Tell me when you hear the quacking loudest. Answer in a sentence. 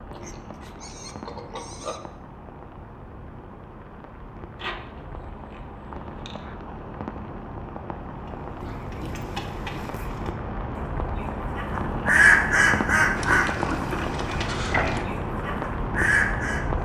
The volume of the quacking peaks at 12 seconds.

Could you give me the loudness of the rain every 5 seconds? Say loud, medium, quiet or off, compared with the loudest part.
quiet, medium, loud, loud.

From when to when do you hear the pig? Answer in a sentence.
You can hear the pig from 0.0 to 2.0 s, from 4.5 to 6.5 s, from 8.6 to 10.2 s and from 13.2 to 15.1 s.